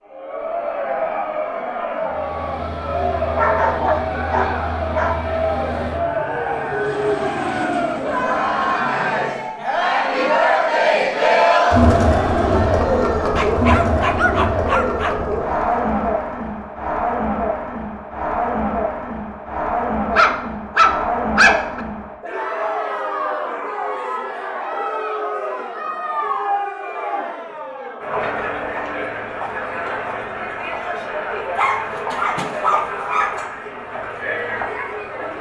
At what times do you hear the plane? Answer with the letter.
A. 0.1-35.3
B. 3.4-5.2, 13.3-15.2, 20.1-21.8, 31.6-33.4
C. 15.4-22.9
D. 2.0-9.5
D.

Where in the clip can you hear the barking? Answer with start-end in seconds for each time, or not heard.
3.4-5.2, 13.3-15.2, 20.1-21.8, 31.6-33.4.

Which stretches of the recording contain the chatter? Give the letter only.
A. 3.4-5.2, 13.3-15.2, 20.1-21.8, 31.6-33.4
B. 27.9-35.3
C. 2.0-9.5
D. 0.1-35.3
D.